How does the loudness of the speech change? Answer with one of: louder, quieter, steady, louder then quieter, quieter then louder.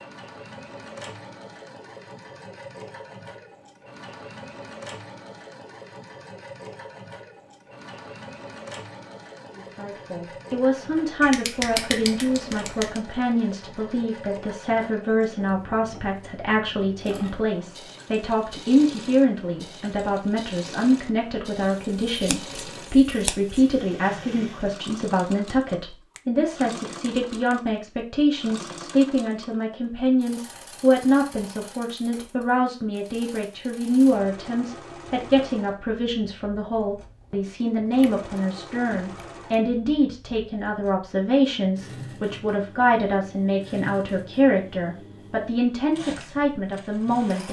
steady.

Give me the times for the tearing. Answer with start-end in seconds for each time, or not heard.
not heard.